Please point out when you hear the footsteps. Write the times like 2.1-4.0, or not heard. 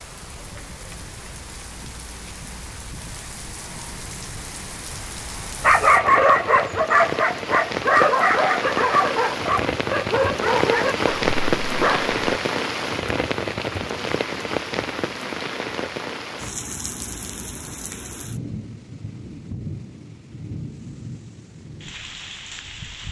not heard.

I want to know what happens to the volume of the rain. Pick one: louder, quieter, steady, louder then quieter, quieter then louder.
louder then quieter.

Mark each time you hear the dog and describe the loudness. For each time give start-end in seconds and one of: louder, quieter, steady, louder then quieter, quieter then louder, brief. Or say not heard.
5.6-12.2 quieter.